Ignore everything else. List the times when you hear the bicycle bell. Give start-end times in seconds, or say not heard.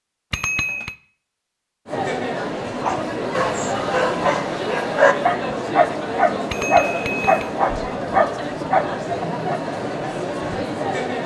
0.3-0.9, 6.5-7.5.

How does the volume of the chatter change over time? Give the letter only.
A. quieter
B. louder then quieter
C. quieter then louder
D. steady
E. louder
D.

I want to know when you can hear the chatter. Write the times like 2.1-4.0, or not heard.
1.9-11.2.